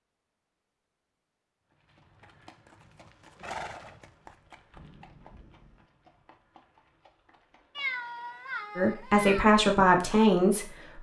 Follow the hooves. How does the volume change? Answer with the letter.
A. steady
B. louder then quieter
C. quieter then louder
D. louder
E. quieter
B.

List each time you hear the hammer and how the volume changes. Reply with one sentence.
You can't hear the hammer here.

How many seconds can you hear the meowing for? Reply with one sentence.
The meowing can be heard for 2 seconds in total.